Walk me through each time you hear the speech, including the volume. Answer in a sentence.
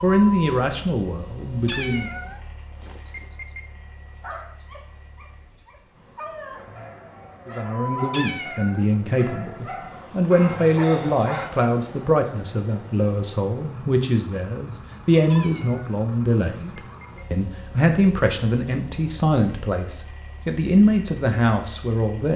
The speech can be heard briefly from 0.0 to 2.1 s; and from 7.5 to 22.3 s, at a steady volume.